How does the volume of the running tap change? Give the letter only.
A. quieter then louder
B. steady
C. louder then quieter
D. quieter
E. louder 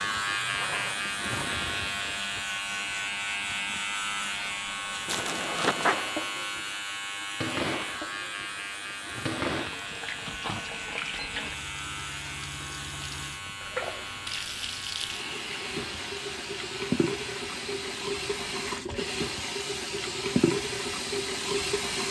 E.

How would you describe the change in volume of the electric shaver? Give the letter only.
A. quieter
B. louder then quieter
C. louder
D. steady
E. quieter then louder
A.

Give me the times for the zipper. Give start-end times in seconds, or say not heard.
5.0-6.0.